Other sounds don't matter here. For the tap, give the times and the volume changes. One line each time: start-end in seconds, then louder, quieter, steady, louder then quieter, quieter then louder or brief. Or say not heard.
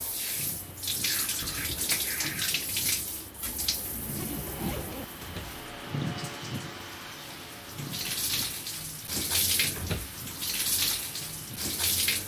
0.0-12.2 quieter then louder.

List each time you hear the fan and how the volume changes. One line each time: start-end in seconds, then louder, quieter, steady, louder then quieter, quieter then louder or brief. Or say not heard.
0.0-12.2 louder then quieter.